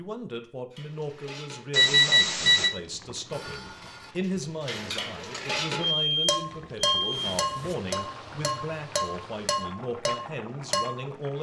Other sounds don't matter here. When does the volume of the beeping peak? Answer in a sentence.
The loudest moment of the beeping is at 2 seconds.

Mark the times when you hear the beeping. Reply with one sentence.
You can hear the beeping from 1.7 to 2.7 s and from 5.9 to 7.8 s.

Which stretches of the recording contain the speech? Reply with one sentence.
You can hear the speech from 0.0 to 11.3 s.